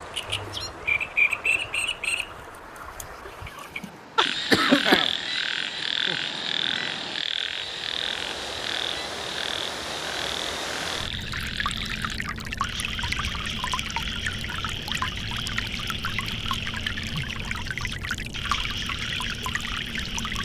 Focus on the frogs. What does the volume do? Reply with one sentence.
The volume of the frogs goes down.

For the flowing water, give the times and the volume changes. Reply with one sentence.
You can hear the flowing water from 0.0 to 20.4 s, getting louder.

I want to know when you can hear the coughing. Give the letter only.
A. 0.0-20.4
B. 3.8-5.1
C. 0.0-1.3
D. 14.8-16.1
B.